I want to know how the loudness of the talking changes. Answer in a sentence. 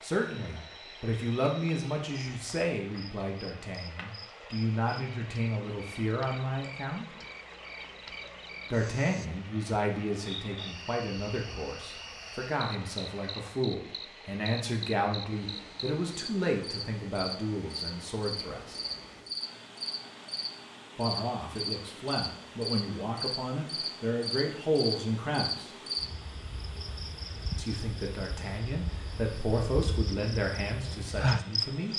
The loudness of the talking stays about the same.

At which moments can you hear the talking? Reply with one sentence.
The talking can be heard from 0.0 to 7.0 s, from 8.7 to 18.8 s, from 20.9 to 25.7 s and from 27.6 to 31.9 s.